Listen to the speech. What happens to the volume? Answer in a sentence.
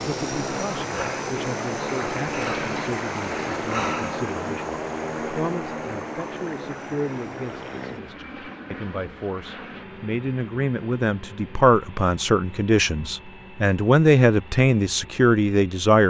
The volume of the speech goes up.